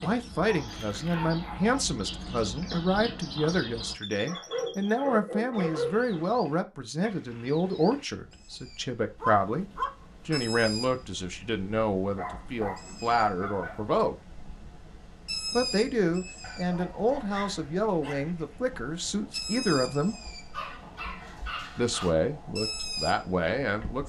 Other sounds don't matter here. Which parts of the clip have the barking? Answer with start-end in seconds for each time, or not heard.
0.3-1.8, 4.2-6.2, 9.2-10.5, 12.2-13.9, 16.4-18.3, 20.5-22.1.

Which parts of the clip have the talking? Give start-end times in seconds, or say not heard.
0.0-9.7, 10.2-14.2, 15.5-20.1, 21.8-24.0.